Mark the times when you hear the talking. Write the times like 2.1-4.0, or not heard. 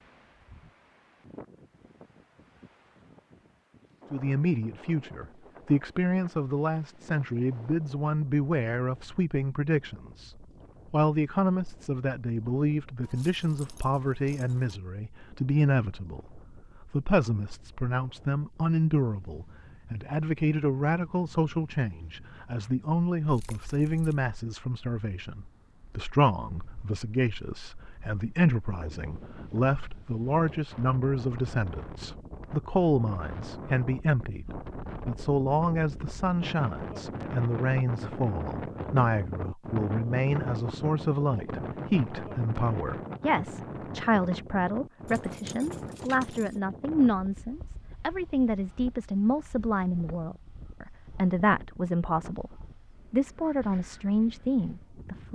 4.1-55.3.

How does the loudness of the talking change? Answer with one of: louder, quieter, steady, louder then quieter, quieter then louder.
steady.